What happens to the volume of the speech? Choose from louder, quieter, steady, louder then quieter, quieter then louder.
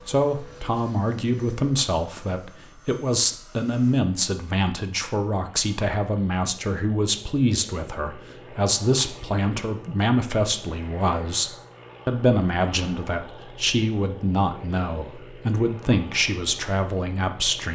steady.